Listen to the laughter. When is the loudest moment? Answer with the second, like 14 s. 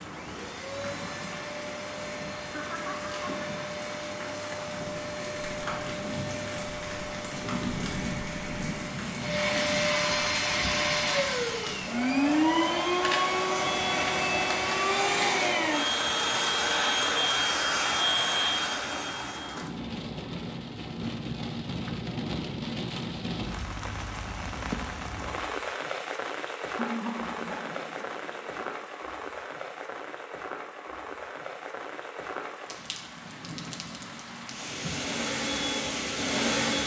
27 s.